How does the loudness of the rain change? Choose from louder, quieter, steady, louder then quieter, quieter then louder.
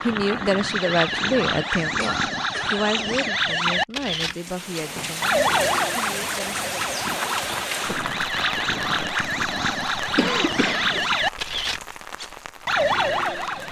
quieter.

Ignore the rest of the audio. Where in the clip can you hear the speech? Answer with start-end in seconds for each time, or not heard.
0.0-6.8.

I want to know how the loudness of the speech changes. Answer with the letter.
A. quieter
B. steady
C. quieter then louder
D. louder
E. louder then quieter
A.